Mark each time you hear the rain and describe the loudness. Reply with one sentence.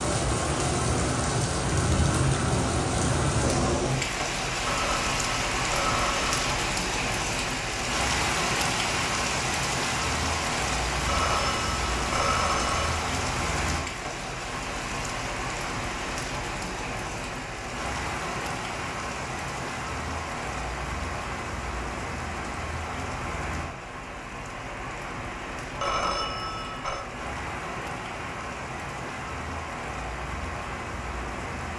The rain can be heard from 0.0 to 31.7 s, getting quieter.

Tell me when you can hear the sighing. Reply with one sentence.
The sighing can't be heard in this clip.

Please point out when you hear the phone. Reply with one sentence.
You can hear the phone from 4.7 to 6.6 s, from 11.1 to 13.0 s and from 25.8 to 27.1 s.